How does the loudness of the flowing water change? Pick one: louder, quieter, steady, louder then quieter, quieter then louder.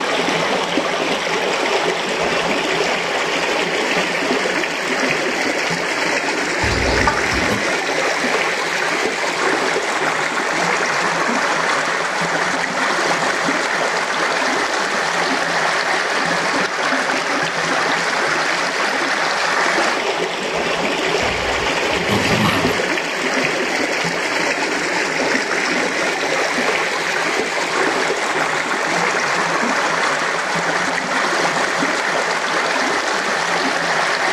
steady.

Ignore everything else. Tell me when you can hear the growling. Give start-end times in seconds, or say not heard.
6.6-7.6, 21.2-22.8.